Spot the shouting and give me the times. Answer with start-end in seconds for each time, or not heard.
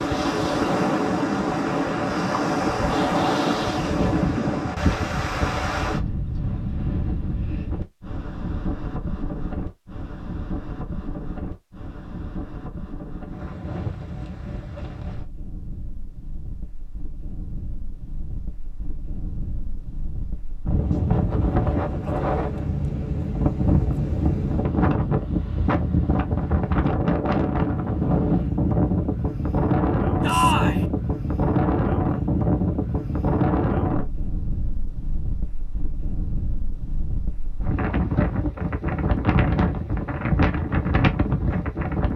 30.2-30.9.